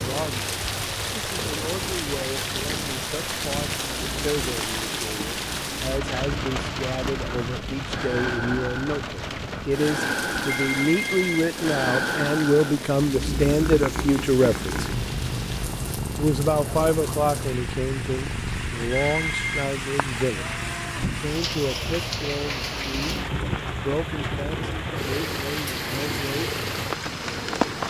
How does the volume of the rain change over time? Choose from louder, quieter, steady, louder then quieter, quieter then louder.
quieter then louder.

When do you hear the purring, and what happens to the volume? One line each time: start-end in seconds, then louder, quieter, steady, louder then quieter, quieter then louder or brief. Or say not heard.
0.0-27.8 louder then quieter.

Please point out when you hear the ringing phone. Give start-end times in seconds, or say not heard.
10.4-11.4, 18.9-19.7.